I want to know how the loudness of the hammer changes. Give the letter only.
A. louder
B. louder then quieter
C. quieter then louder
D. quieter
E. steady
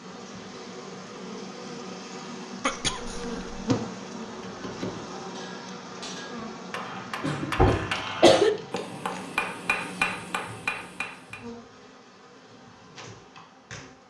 A.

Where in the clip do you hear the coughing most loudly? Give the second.
8 s.